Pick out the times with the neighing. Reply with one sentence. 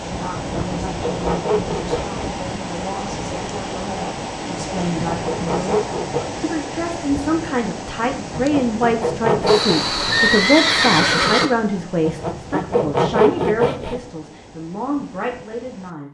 You can hear the neighing from 9.4 to 11.5 s.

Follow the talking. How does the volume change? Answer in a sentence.
The loudness of the talking goes up, then down.